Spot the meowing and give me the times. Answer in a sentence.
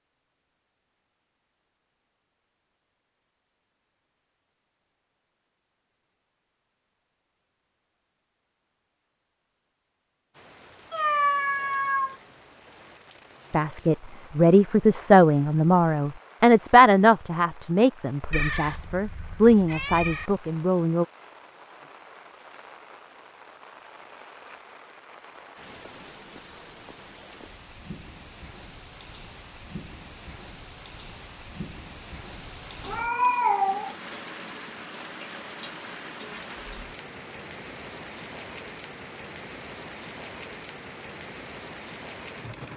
The meowing can be heard from 10.9 to 12.2 s, from 18.3 to 20.3 s and from 32.9 to 34.0 s.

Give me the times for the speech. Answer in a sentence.
You can hear the speech from 13.5 to 21.1 s.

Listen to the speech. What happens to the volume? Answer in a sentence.
The loudness of the speech goes down, then up.